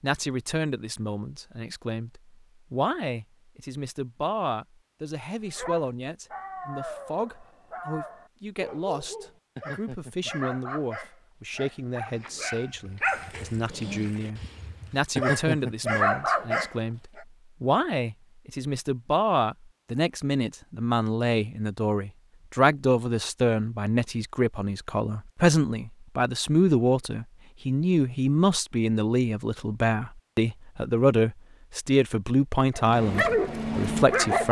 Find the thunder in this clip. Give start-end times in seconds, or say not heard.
not heard.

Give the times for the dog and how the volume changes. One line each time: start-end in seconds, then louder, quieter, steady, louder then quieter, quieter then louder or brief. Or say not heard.
5.5-17.2 louder
32.8-34.4 brief.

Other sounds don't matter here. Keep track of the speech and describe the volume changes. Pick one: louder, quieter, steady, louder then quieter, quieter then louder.
louder.